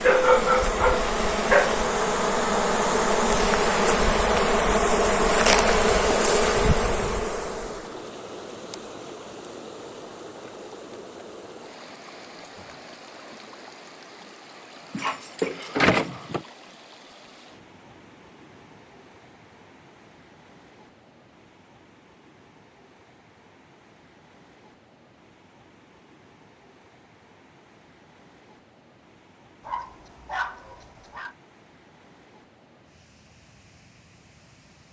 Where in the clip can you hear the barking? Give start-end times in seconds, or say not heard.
0.0-1.9, 14.9-16.4, 29.6-31.4.